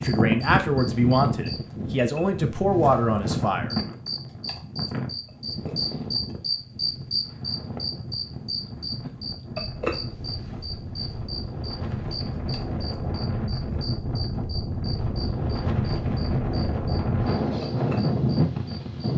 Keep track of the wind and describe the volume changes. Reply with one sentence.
The loudness of the wind goes down, then up.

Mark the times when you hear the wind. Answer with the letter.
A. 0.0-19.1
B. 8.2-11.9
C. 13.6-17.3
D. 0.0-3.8
A.